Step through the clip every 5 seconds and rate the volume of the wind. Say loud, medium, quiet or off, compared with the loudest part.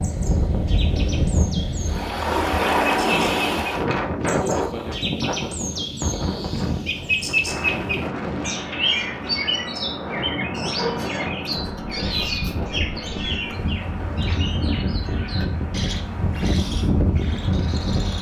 loud, medium, medium, loud.